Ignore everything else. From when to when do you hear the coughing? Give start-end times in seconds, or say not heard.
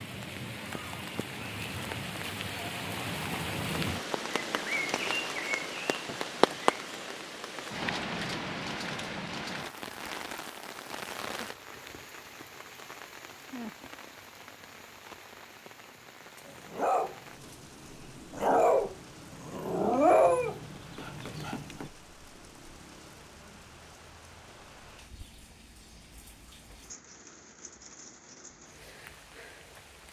not heard.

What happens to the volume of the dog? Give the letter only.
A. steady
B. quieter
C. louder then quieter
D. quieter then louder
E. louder
C.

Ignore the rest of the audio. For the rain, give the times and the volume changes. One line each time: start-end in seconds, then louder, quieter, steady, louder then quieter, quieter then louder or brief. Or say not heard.
0.0-30.0 quieter.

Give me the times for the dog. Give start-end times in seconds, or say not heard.
16.4-21.9.